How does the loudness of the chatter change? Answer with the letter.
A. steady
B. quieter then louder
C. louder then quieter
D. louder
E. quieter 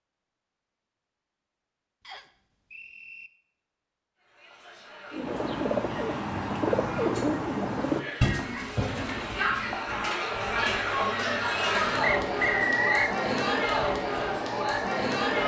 D.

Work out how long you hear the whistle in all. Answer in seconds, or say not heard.
2 s.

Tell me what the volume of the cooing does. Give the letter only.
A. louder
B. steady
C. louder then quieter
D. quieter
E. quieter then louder
D.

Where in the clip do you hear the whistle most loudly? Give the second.
13 s.